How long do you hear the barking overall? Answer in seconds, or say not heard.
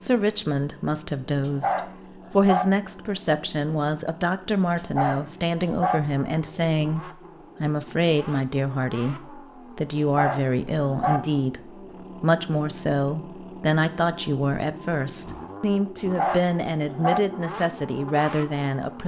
5 s.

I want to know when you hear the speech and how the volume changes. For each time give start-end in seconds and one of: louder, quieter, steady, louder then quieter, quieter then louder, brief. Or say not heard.
0.0-19.0 steady.